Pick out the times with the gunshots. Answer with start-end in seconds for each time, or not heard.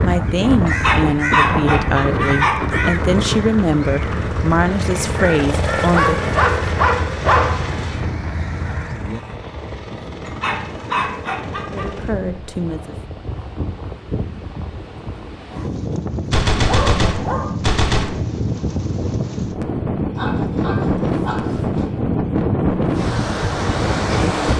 16.3-18.1.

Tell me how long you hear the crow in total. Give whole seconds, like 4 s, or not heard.
9 s.